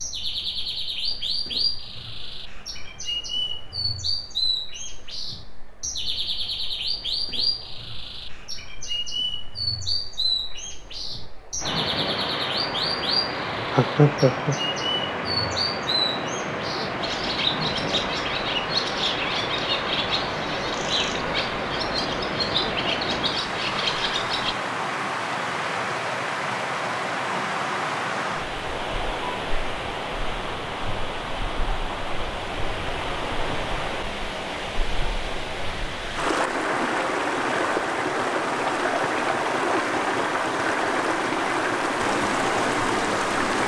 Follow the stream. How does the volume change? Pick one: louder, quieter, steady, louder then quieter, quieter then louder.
louder.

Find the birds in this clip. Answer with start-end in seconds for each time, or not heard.
0.0-24.6.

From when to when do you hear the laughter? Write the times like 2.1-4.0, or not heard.
13.7-14.6.